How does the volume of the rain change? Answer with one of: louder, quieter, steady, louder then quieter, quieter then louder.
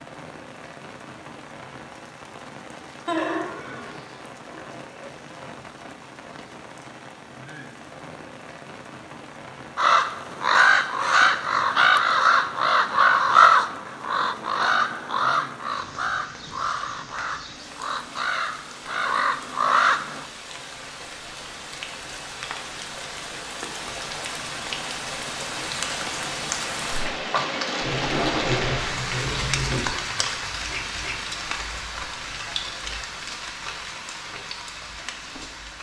louder.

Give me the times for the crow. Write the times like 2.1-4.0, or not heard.
9.8-20.2.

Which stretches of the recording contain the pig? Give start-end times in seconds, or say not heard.
3.0-5.1, 27.8-29.9.